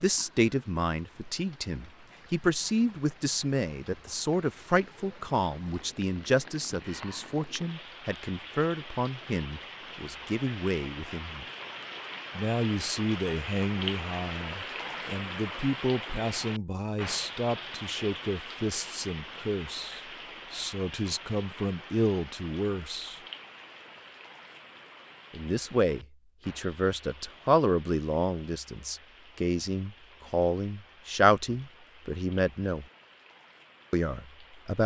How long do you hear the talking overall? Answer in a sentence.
The talking can be heard for 31 seconds in total.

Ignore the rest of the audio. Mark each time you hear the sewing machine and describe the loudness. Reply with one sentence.
You can't hear the sewing machine here.